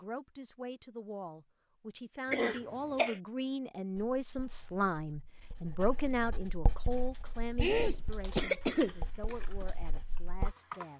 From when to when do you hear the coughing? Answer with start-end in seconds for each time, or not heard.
2.3-3.2, 7.6-9.3.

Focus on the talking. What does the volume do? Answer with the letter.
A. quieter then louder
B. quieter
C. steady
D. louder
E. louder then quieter
E.